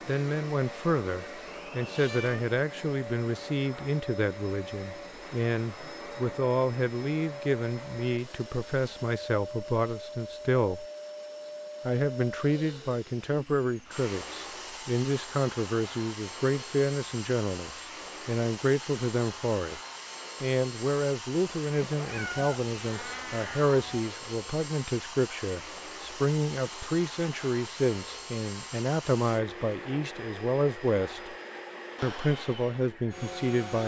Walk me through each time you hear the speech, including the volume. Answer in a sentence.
You can hear the speech from 0.1 to 10.8 s, at a steady volume; from 11.8 to 19.8 s, at a steady volume; from 20.4 to 31.4 s, at a steady volume; and briefly from 32.0 to 33.8 s.